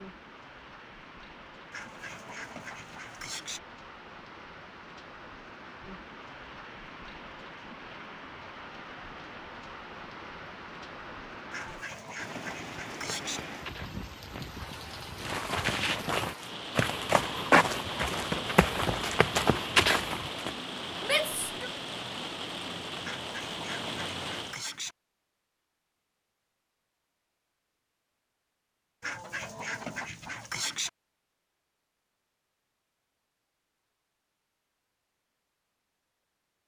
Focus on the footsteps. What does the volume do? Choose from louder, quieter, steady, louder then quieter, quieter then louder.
louder.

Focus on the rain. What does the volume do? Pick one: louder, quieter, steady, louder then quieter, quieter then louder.
louder.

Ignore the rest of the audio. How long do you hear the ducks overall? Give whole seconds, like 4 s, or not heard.
8 s.